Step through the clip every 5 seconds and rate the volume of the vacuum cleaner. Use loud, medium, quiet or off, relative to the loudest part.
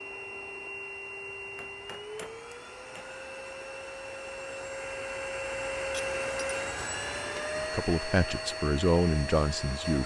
medium, loud.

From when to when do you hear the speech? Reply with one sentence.
The speech can be heard from 7.5 to 10.0 s.